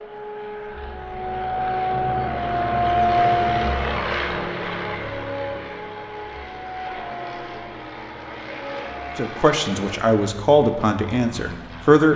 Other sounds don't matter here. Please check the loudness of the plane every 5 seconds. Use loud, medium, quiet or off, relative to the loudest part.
loud, medium, quiet.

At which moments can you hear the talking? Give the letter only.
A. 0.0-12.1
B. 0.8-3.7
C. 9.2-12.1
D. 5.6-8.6
C.